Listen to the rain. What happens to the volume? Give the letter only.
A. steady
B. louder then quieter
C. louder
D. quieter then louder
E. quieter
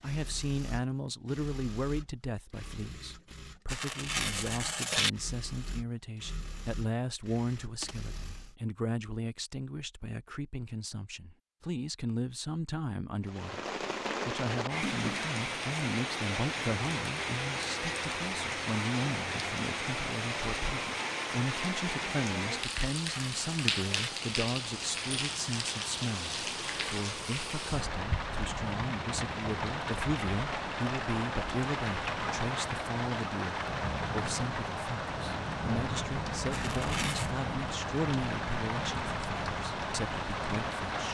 A.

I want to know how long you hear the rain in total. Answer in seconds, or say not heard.
28 s.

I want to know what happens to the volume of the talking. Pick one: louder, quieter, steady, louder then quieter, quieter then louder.
steady.